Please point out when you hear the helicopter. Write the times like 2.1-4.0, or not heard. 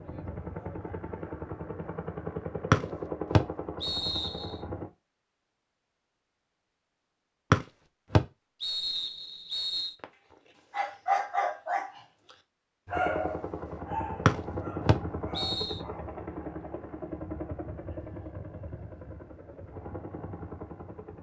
0.0-4.9, 12.9-21.1.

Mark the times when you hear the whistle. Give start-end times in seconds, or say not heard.
2.7-4.5, 7.5-9.9, 14.2-15.8.